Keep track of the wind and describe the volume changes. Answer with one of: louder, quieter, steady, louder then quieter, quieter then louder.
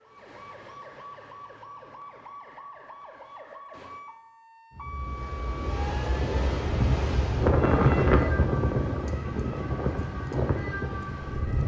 louder then quieter.